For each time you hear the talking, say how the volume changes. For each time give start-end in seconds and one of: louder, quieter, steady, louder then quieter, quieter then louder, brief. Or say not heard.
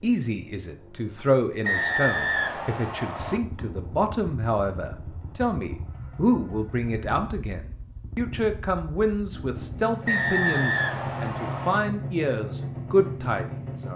0.0-13.9 steady.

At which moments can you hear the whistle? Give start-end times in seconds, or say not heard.
1.6-3.4, 10.1-11.8.